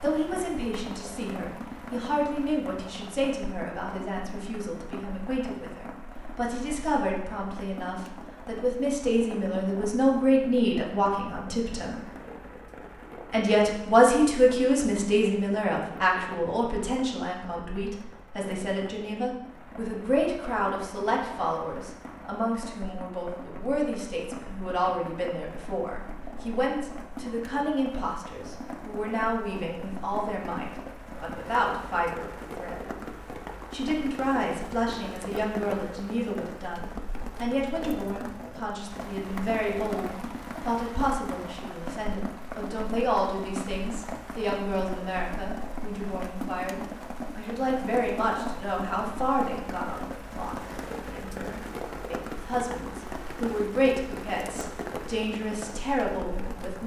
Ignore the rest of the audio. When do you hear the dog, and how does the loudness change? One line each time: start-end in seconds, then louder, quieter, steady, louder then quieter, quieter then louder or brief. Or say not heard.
not heard.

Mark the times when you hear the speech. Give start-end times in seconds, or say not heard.
0.0-12.1, 13.3-32.9, 33.7-56.8.